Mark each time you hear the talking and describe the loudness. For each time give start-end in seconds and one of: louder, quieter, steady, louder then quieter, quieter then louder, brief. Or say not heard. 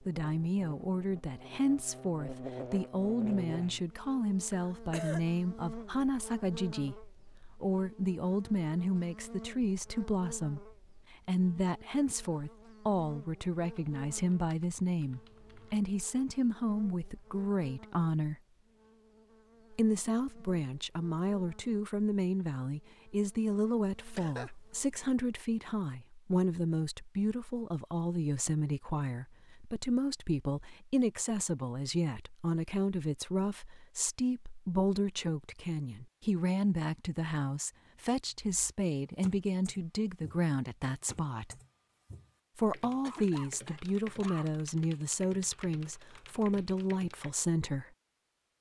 0.0-18.4 steady
19.7-41.5 steady
42.5-47.9 steady.